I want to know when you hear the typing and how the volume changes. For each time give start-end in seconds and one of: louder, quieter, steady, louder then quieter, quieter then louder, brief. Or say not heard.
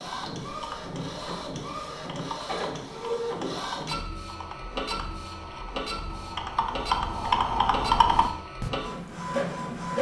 0.0-8.7 louder.